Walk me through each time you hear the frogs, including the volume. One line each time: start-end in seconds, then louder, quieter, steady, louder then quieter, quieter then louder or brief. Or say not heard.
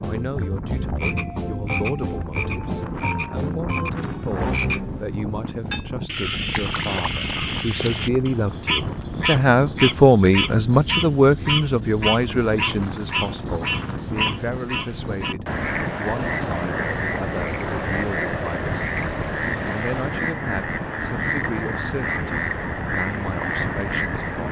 0.0-24.4 steady.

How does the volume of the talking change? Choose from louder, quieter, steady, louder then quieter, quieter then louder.
louder then quieter.